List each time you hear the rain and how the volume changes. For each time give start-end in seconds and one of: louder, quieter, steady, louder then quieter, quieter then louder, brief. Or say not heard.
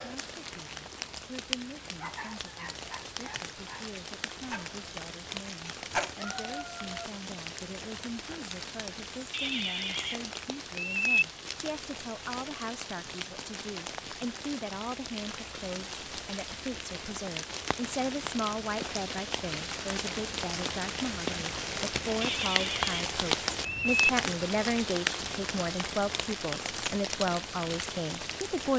0.0-28.7 louder.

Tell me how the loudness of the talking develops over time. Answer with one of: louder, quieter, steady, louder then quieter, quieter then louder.
louder.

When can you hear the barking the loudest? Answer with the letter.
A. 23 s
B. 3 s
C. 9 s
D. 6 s
D.